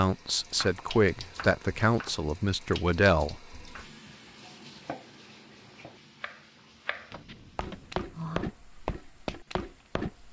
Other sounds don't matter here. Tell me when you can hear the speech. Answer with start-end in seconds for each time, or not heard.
0.0-3.6.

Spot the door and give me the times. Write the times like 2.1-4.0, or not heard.
7.1-8.4.